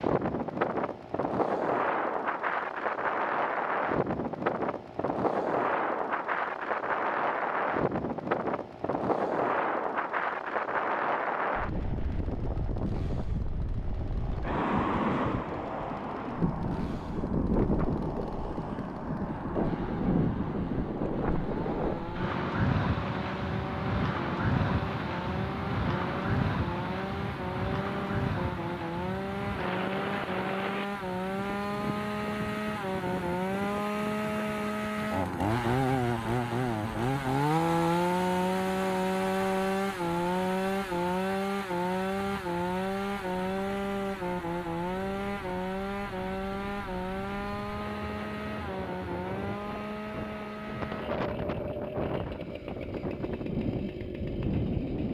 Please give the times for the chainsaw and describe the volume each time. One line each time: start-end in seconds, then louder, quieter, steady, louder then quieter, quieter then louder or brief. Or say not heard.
0.2-55.1 louder then quieter.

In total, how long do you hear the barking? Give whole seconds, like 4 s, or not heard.
not heard.